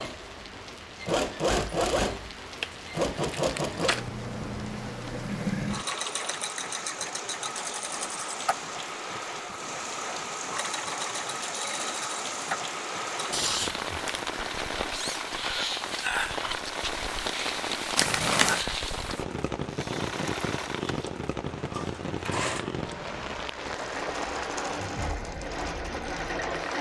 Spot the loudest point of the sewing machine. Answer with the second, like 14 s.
2 s.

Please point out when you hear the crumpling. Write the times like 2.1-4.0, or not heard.
2.6-4.0, 13.3-14.2, 17.9-18.6.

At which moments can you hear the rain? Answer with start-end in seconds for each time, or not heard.
0.0-26.7.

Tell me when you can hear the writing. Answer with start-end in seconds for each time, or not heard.
not heard.